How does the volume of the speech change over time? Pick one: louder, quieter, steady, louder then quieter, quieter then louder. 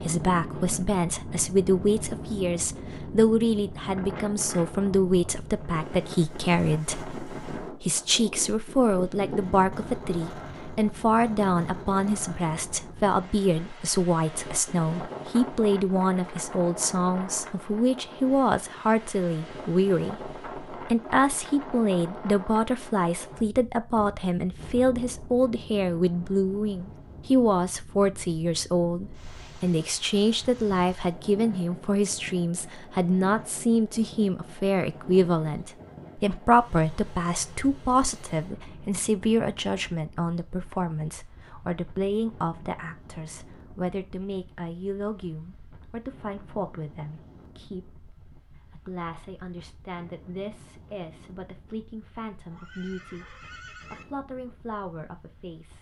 quieter.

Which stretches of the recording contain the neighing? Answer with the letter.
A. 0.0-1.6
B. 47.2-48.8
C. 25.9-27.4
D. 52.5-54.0
D.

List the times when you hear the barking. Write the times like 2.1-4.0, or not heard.
not heard.